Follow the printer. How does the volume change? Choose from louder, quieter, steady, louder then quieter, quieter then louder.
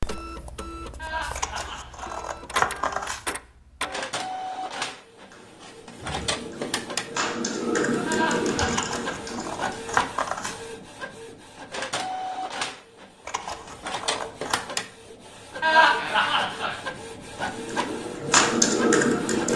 steady.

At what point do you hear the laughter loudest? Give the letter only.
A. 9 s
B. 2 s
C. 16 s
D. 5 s
C.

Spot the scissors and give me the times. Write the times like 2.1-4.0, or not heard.
1.4-3.2, 8.7-10.6, 13.2-14.6.